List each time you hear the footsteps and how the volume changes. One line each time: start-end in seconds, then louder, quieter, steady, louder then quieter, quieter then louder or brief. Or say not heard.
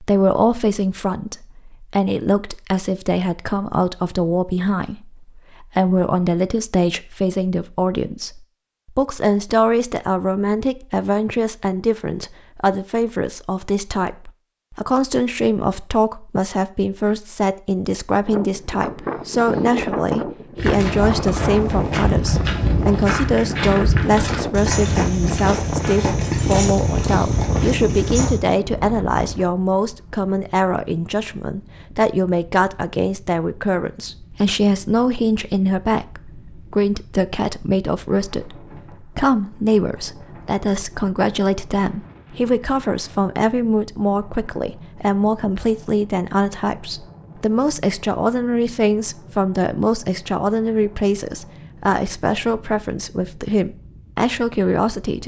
20.6-28.4 steady.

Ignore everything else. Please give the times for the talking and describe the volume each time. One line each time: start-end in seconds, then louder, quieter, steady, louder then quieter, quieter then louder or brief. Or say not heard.
0.0-55.2 steady.